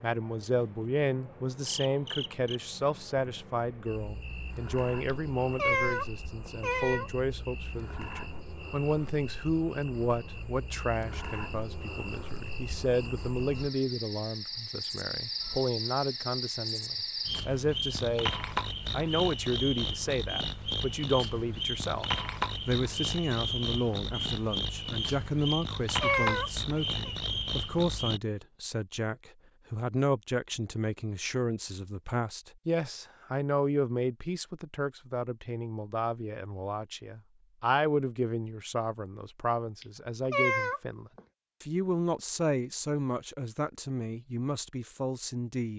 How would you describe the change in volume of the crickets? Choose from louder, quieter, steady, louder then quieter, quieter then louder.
louder.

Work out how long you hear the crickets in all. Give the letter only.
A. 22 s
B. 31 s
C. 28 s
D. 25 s
C.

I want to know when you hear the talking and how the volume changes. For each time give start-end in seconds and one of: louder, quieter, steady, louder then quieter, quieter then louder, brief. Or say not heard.
0.0-45.7 steady.